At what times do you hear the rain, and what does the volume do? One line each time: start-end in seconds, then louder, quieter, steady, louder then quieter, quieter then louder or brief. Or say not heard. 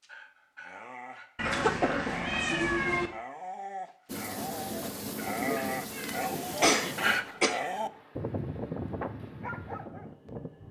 4.0-10.6 quieter.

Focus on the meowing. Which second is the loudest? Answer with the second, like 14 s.
3 s.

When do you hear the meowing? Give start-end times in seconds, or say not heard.
1.4-3.1, 5.5-6.2.